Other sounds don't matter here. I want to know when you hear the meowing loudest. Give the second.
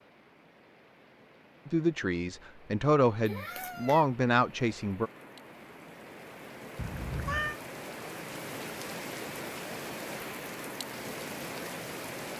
7 s.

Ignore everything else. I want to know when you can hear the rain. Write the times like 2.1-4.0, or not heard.
0.0-12.3.